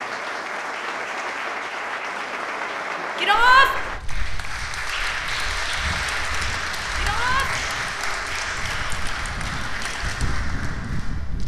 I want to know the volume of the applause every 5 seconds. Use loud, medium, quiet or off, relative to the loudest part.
loud, loud, medium.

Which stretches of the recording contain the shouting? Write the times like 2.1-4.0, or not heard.
3.1-3.7, 7.0-7.5.